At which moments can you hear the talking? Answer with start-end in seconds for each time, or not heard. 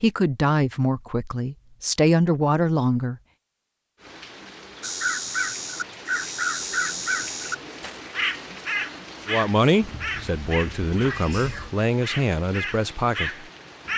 0.0-3.1, 9.2-13.4.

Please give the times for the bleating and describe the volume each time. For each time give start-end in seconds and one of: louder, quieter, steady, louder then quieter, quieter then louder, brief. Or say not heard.
not heard.